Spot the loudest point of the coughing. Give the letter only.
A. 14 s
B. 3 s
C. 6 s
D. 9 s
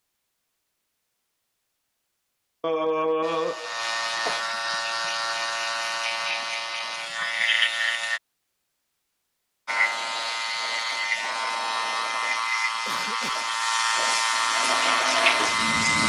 B.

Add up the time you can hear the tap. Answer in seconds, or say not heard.
2 s.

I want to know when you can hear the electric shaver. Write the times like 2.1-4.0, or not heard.
3.2-8.2, 9.7-16.0.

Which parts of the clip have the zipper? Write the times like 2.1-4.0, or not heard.
not heard.